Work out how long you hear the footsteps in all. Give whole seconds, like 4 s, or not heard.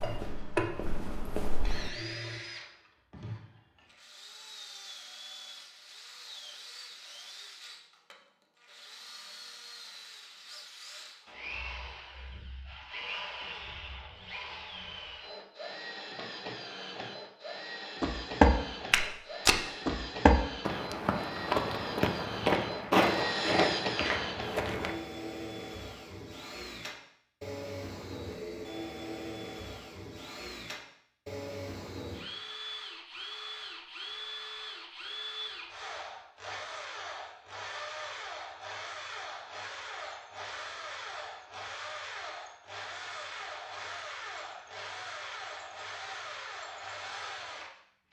9 s.